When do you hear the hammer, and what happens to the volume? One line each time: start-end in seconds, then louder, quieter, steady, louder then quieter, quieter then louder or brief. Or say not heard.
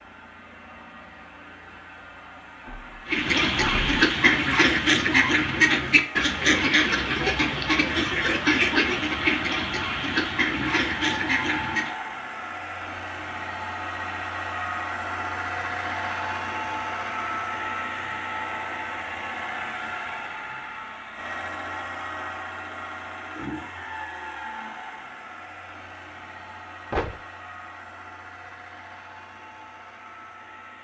not heard.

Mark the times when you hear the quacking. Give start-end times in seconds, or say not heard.
3.0-11.9.